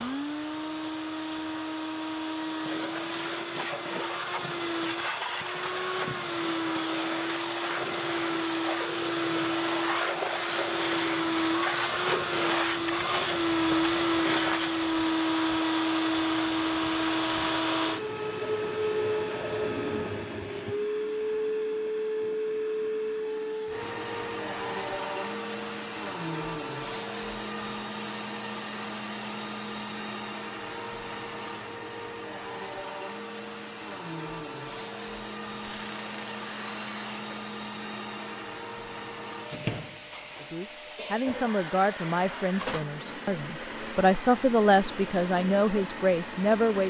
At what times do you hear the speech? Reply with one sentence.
The speech can be heard from 40.4 to 46.8 s.